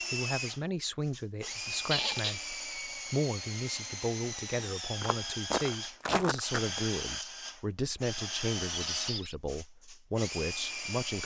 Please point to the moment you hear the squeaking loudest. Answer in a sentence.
The volume of the squeaking peaks at 2 seconds.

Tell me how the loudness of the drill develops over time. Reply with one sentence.
The volume of the drill stays about the same.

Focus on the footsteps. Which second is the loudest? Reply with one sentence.
The volume of the footsteps peaks at 6 seconds.